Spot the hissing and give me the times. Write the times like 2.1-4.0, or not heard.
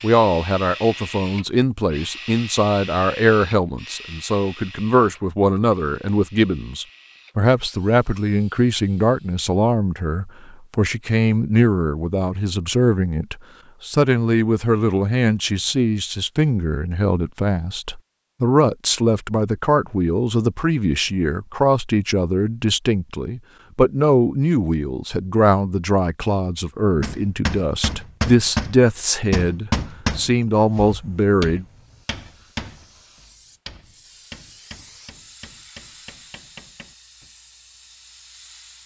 31.6-38.8.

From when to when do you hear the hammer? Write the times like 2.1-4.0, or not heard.
27.0-37.3.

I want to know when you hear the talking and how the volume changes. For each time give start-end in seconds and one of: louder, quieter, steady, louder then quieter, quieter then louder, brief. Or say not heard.
0.0-31.6 steady.